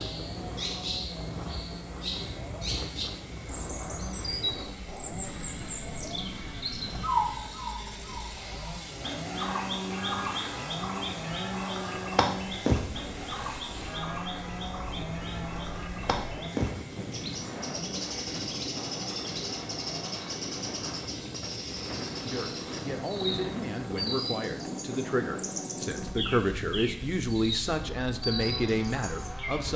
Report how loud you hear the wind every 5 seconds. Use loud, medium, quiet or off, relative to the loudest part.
loud, medium, medium, loud, loud, loud.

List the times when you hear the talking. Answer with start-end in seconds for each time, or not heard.
22.2-29.7.